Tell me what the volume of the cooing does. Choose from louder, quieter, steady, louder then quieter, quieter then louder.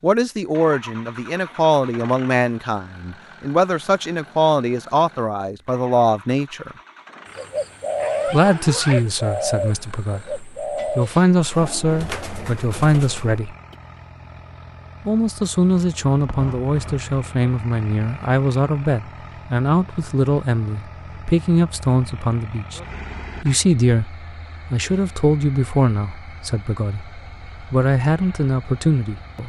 quieter.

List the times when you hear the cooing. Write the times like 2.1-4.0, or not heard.
7.2-13.8.